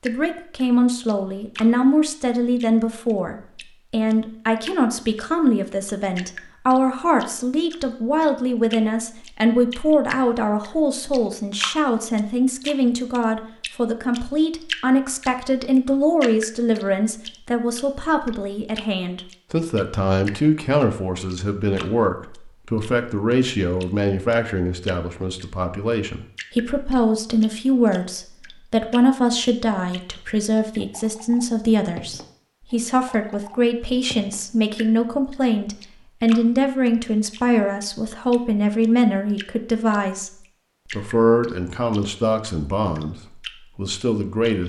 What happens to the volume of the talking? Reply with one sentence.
The loudness of the talking stays about the same.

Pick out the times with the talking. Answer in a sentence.
The talking can be heard from 0.0 to 40.3 s and from 40.9 to 44.6 s.